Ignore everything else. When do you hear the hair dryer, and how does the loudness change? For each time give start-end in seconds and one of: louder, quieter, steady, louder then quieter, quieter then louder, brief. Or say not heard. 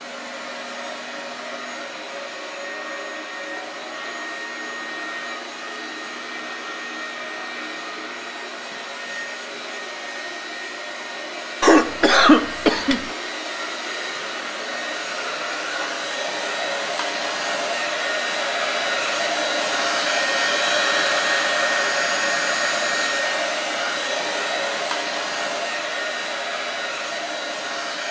0.0-28.0 louder.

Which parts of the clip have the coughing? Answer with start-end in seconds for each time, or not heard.
11.6-13.0.